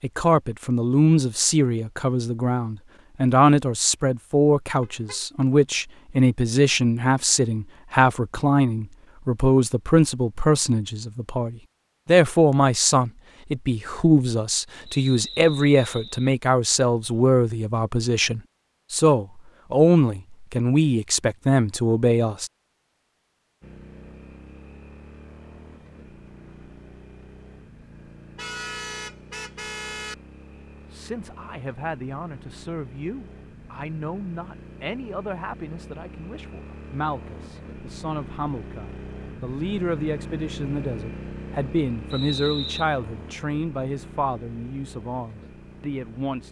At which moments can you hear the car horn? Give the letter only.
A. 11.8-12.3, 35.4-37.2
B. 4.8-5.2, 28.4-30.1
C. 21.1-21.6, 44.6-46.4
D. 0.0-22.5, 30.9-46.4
B.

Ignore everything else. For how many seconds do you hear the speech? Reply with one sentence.
The speech can be heard for 38 seconds in total.